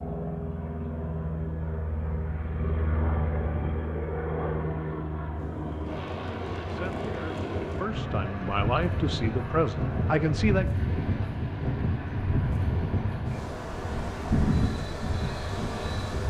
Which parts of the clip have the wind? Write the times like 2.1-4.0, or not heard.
5.3-16.2.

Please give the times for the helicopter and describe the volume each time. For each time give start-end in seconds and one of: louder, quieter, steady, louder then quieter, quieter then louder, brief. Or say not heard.
0.0-16.2 quieter.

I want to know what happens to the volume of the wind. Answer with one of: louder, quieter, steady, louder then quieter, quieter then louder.
louder.